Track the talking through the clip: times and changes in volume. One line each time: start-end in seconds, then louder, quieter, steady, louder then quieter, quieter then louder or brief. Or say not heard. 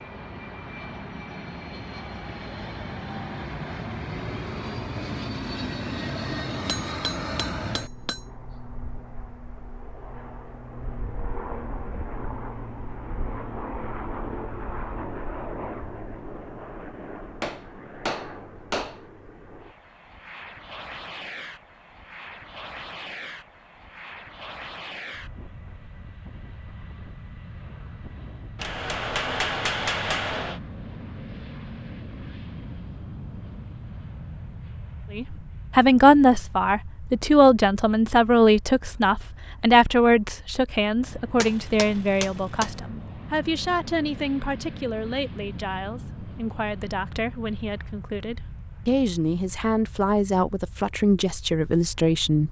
35.1-52.4 quieter then louder.